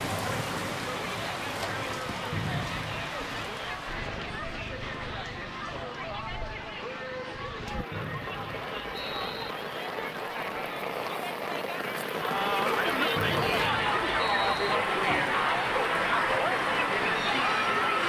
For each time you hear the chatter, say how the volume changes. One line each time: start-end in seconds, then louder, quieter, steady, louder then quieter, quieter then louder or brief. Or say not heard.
0.2-18.0 louder.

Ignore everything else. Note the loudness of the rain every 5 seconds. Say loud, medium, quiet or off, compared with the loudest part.
loud, medium, loud, loud.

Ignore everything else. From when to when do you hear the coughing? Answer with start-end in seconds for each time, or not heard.
not heard.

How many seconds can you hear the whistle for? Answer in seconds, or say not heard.
4 s.